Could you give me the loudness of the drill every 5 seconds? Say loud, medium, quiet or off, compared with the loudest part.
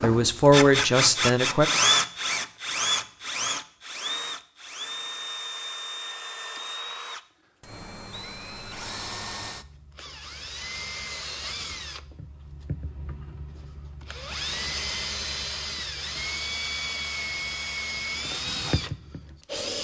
loud, medium, medium, medium.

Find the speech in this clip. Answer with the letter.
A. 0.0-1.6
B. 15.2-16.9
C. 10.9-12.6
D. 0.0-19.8
A.